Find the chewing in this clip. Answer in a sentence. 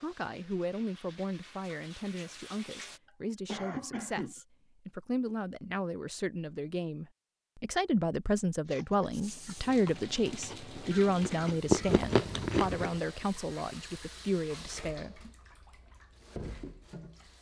The chewing can be heard from 8.7 to 12.9 s.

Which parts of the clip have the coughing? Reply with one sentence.
You can hear the coughing from 3.5 to 4.3 s and from 10.8 to 12.1 s.